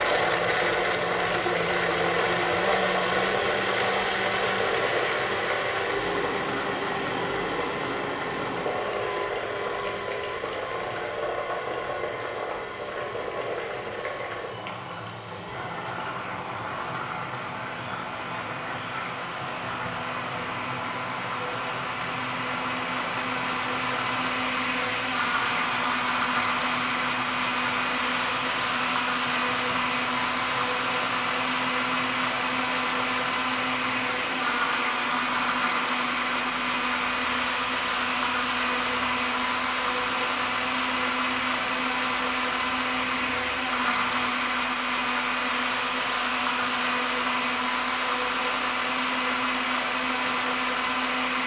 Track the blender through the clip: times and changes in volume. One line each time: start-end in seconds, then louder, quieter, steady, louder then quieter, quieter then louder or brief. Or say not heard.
0.0-51.4 quieter then louder.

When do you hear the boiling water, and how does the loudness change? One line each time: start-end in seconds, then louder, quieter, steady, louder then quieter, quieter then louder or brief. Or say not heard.
0.0-51.4 quieter.